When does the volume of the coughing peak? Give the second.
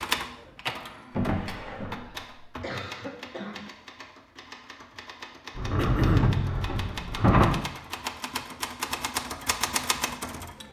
6 s.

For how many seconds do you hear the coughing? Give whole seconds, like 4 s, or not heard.
2 s.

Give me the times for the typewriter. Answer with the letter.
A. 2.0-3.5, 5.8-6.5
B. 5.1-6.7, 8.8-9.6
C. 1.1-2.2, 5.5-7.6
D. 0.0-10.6
D.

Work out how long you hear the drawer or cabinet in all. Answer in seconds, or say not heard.
3 s.